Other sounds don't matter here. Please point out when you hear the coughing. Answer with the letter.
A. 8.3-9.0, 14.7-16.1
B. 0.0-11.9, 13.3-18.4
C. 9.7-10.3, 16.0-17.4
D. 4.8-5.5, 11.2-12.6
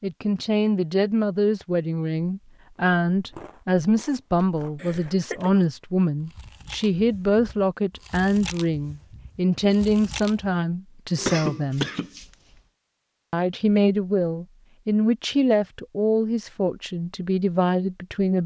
D.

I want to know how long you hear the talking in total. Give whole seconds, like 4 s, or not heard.
17 s.